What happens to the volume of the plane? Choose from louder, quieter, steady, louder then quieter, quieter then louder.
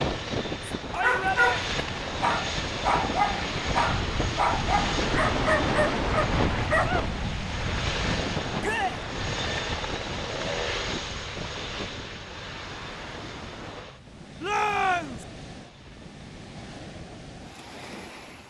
quieter.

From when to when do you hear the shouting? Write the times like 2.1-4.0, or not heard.
0.9-1.6, 8.6-9.0, 14.4-15.2.